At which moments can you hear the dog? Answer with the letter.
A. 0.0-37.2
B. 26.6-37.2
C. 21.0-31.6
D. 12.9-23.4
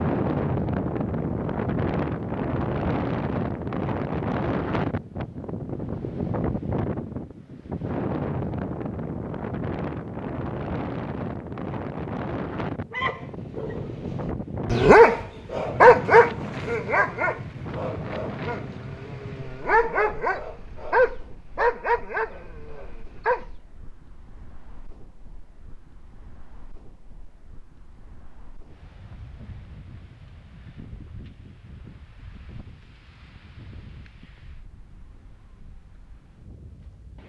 D.